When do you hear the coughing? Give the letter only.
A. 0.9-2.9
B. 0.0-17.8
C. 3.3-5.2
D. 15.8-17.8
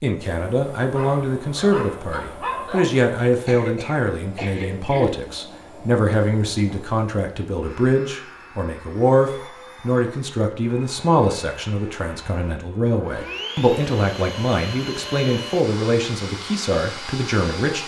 C.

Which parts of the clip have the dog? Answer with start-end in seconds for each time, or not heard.
0.9-2.9.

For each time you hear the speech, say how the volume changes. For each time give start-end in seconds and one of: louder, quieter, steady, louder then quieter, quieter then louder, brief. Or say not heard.
0.0-17.8 steady.